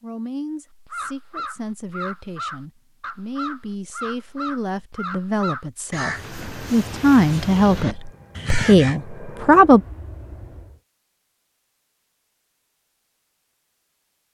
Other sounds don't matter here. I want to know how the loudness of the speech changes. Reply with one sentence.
The loudness of the speech goes up.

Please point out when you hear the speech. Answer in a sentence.
The speech can be heard from 0.0 to 9.8 s.